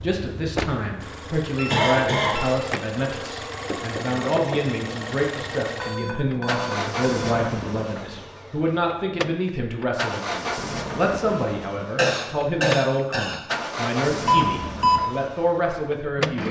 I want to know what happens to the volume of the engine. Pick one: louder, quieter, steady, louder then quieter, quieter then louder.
steady.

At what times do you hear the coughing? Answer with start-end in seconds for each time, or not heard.
1.6-2.4, 11.9-13.4.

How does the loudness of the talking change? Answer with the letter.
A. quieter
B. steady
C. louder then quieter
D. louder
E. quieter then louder
B.